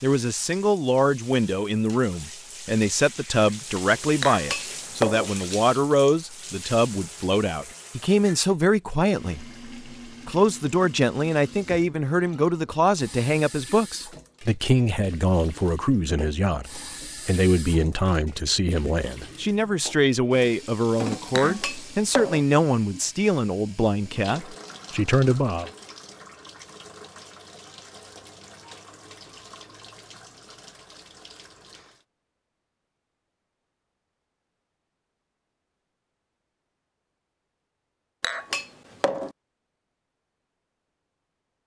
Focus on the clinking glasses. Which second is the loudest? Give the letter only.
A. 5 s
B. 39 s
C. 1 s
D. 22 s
A.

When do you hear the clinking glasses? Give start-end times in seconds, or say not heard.
4.2-5.3, 21.4-22.4, 38.2-39.3.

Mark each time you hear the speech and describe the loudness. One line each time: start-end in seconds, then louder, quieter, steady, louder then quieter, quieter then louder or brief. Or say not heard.
0.0-25.7 steady.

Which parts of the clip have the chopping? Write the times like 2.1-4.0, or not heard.
not heard.